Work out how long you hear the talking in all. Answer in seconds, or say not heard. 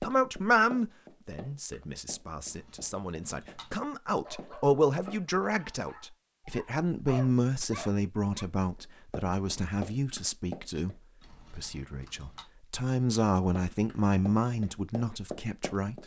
16 s.